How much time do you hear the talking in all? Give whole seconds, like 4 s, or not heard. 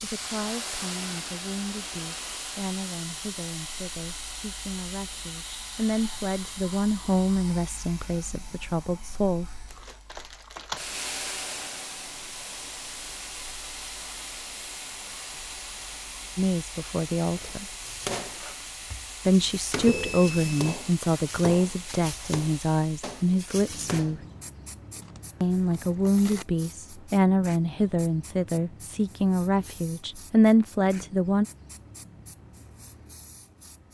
22 s.